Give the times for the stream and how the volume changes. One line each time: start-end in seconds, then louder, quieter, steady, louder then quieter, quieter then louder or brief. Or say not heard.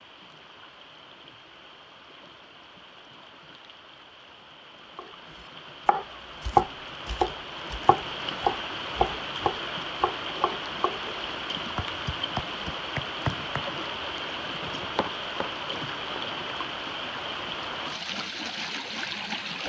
0.0-19.6 louder.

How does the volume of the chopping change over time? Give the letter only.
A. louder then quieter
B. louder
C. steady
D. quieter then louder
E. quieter
E.